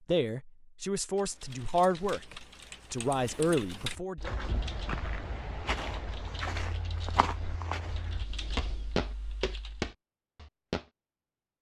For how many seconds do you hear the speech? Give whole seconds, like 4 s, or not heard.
4 s.